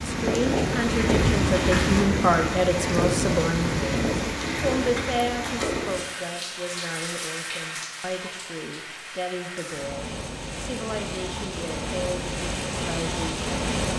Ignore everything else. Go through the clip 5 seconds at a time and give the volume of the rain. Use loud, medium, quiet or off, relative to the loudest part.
loud, medium, medium.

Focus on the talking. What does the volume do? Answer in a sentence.
The volume of the talking goes down.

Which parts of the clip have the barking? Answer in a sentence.
You can't hear the barking here.